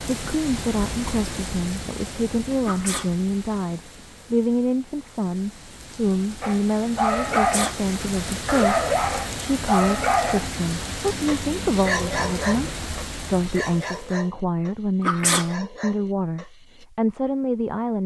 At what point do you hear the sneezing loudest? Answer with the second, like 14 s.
15 s.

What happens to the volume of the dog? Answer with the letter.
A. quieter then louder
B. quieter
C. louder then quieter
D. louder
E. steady
B.